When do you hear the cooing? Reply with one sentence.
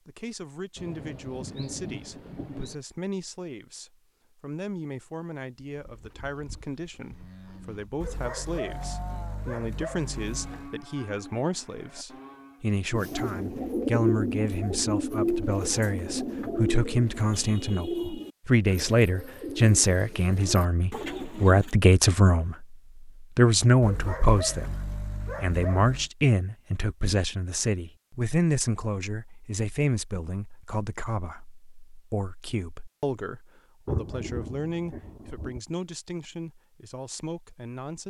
The cooing can be heard from 12.9 to 21.8 s.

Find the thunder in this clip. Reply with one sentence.
The thunder can be heard from 0.8 to 2.8 s and from 33.9 to 35.6 s.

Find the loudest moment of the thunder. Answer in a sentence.
The loudest moment of the thunder is at 34 seconds.